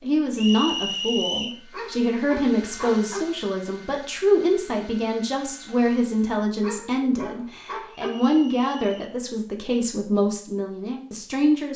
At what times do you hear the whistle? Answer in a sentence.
You can hear the whistle from 0.3 to 1.6 s and from 7.9 to 9.2 s.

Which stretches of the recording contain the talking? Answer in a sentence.
You can hear the talking from 0.0 to 11.7 s.